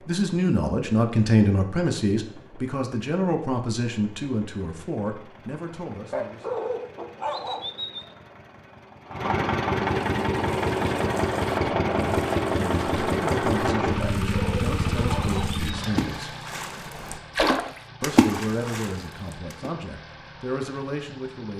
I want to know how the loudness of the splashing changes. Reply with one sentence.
The loudness of the splashing goes up.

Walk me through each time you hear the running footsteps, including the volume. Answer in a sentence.
The running footsteps can't be heard in this clip.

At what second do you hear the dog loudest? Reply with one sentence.
The volume of the dog peaks at 7 seconds.